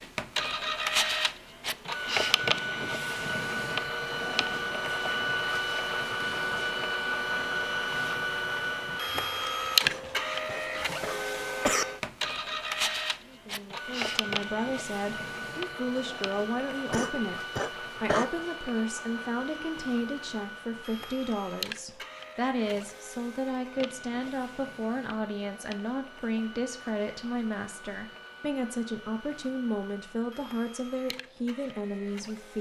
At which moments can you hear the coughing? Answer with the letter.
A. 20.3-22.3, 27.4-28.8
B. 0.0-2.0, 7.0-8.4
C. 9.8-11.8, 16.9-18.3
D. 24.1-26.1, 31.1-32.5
C.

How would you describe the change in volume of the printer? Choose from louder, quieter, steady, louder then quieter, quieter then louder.
quieter.